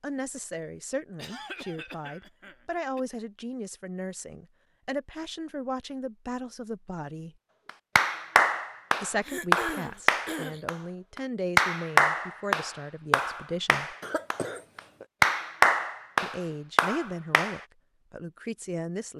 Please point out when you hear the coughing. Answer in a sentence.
The coughing can be heard from 1.1 to 3.0 s, from 9.2 to 10.7 s and from 14.0 to 15.1 s.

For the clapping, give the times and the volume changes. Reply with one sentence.
You can hear the clapping from 7.7 to 17.6 s, at a steady volume.